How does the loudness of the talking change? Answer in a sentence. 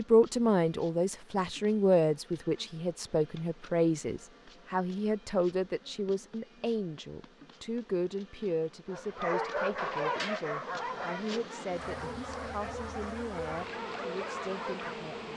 The loudness of the talking goes down.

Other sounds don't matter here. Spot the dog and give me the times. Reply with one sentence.
The dog can be heard from 8.9 to 15.1 s.